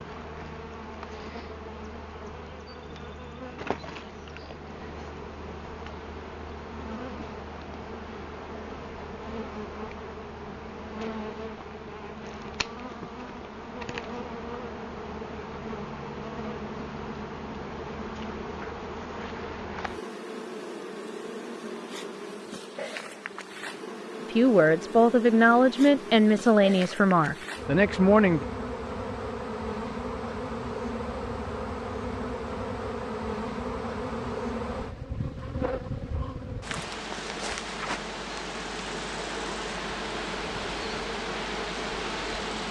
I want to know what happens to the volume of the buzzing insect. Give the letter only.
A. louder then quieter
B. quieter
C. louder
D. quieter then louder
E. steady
C.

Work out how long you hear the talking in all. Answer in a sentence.
You can hear the talking for 4 seconds altogether.